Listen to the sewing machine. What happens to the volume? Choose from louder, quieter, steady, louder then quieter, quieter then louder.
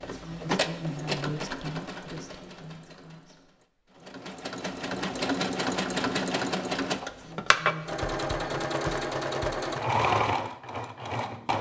quieter then louder.